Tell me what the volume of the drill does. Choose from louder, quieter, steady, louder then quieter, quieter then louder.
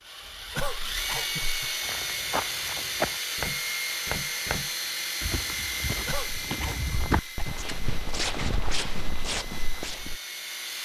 quieter.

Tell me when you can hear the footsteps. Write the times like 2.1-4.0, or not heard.
1.8-10.2.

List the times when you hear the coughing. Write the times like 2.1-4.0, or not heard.
0.6-1.8, 6.0-7.5.